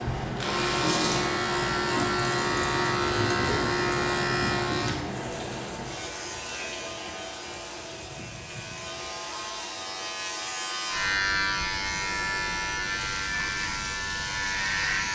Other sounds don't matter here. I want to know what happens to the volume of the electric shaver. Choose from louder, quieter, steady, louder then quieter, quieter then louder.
quieter then louder.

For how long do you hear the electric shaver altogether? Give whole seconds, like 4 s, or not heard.
15 s.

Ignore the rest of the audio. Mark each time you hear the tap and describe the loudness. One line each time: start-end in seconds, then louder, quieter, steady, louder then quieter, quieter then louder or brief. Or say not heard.
0.0-15.0 quieter.